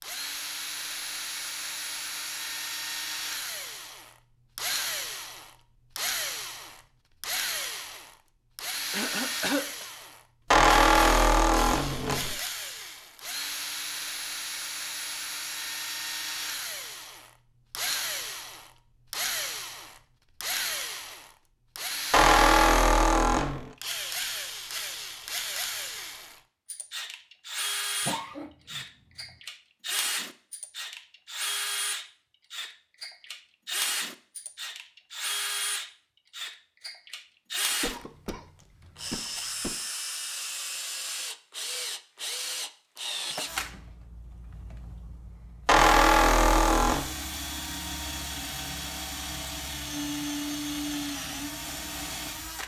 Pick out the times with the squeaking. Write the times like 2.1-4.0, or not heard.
10.5-12.4, 22.1-23.7, 45.6-47.1.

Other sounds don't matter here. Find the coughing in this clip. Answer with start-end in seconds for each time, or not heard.
8.9-9.8, 28.1-29.4, 37.8-39.8.